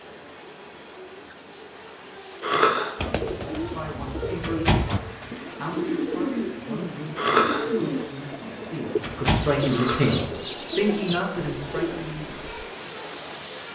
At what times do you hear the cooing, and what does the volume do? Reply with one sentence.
You can hear the cooing from 3.0 to 12.7 s, at a steady volume.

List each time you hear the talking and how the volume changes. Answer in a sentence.
The talking can be heard from 3.6 to 12.3 s, getting louder.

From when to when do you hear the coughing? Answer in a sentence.
You can hear the coughing from 2.4 to 3.0 s, from 7.2 to 7.7 s and from 9.7 to 10.2 s.